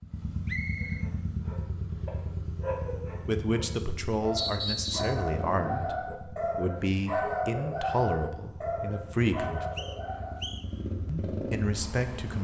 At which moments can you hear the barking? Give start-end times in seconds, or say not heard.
0.8-10.6.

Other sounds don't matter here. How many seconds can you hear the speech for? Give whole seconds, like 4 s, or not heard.
8 s.